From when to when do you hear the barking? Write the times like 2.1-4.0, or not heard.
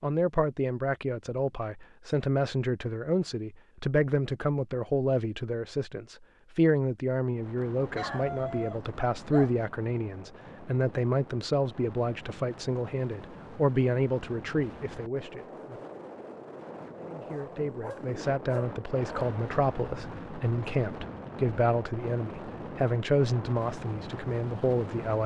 7.9-9.7, 17.2-19.3.